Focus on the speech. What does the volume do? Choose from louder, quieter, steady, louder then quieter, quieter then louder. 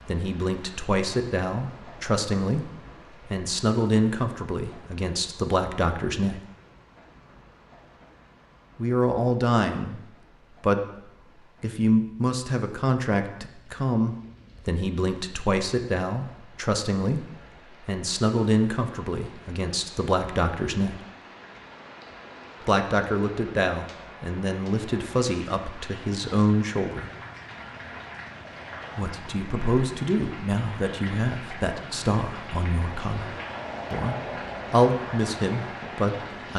steady.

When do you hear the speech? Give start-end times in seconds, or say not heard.
0.1-6.4, 8.8-21.0, 22.6-27.1, 28.9-36.5.